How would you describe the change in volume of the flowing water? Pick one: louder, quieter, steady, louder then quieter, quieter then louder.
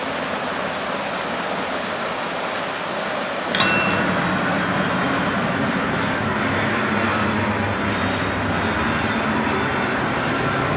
quieter.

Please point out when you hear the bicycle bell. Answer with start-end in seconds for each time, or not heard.
3.5-4.0.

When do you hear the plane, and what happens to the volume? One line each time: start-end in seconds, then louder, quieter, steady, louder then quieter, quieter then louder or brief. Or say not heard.
0.0-10.7 louder.